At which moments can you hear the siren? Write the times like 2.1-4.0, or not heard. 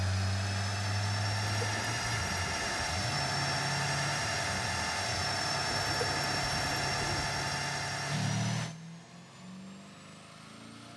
not heard.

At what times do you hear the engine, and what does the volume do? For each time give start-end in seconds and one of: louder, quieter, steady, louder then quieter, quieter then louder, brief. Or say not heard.
0.0-10.9 quieter.